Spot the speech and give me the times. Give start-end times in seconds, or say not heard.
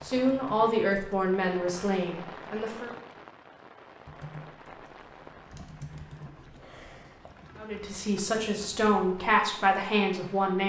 0.0-2.9, 7.5-10.6.